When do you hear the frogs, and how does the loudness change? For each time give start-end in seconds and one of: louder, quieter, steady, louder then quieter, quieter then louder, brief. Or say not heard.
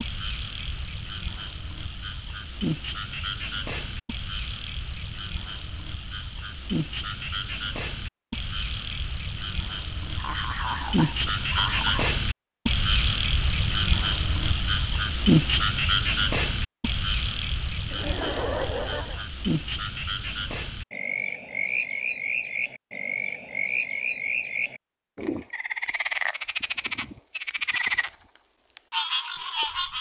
0.0-29.9 louder then quieter.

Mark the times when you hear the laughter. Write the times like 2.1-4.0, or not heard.
10.1-12.2, 17.9-19.2.